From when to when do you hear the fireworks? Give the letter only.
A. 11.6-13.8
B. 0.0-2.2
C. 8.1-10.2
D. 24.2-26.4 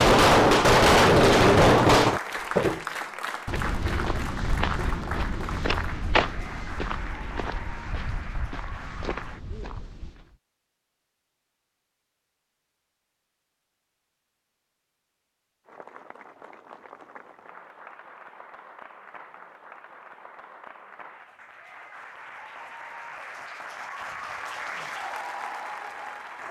B.